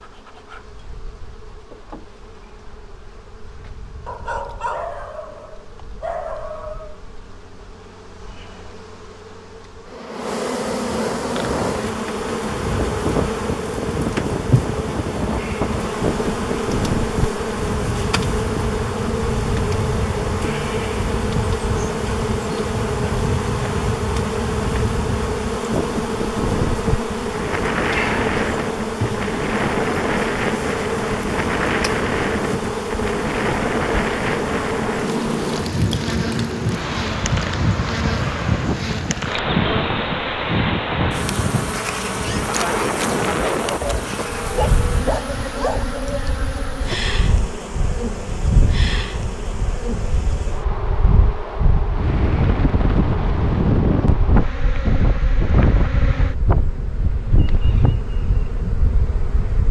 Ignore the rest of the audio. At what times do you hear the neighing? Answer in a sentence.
The neighing can't be heard in this clip.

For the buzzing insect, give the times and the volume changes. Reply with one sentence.
The buzzing insect can be heard from 0.0 to 59.6 s, getting louder then quieter.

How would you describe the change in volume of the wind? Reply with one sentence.
The volume of the wind stays about the same.